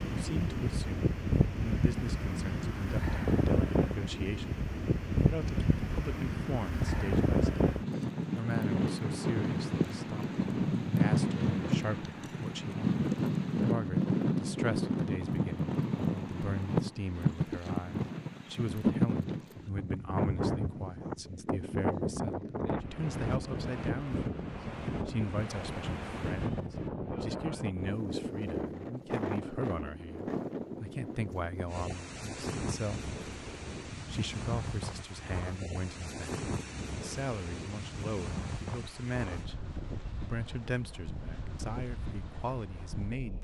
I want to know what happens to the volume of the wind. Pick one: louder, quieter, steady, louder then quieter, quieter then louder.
quieter.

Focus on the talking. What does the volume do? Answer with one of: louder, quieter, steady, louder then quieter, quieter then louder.
steady.